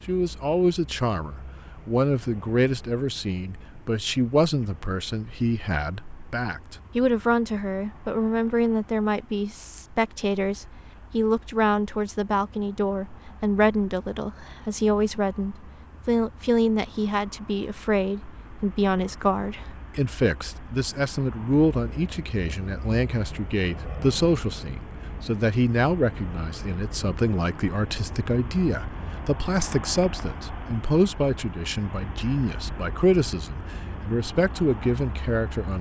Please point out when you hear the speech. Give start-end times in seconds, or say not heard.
0.1-35.7.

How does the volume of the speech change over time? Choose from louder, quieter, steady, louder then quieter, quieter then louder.
steady.